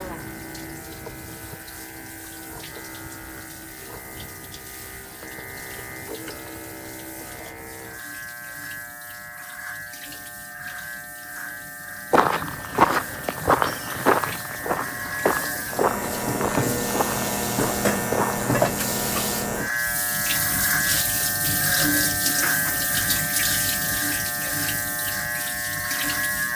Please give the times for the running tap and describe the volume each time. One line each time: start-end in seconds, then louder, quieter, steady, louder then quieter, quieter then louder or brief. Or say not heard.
0.0-26.5 louder.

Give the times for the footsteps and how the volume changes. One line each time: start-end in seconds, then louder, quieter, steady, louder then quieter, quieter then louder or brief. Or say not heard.
12.1-18.4 quieter.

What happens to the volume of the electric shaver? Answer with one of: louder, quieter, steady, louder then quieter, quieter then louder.
louder.